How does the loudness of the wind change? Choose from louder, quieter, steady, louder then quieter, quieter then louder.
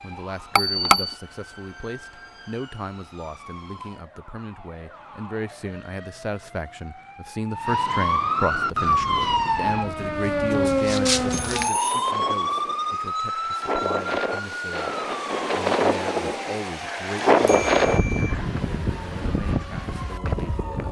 louder then quieter.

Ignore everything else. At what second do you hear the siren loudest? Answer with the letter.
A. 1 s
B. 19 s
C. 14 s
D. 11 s
D.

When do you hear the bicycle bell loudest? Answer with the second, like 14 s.
1 s.